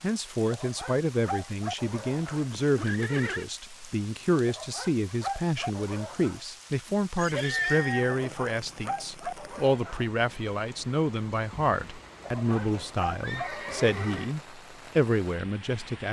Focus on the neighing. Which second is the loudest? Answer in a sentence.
The loudest moment of the neighing is at 8 seconds.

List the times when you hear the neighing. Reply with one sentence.
You can hear the neighing from 2.2 to 3.5 s, from 7.2 to 8.3 s and from 12.4 to 14.3 s.